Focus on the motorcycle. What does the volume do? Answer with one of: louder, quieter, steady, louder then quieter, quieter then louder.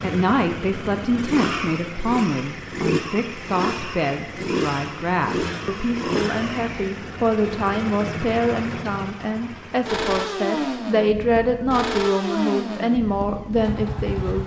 steady.